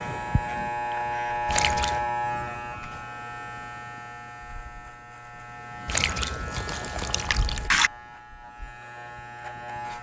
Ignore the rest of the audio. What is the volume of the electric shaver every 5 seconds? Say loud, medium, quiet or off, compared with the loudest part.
loud, medium.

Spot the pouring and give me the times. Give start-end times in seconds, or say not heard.
1.4-2.0, 5.8-7.9.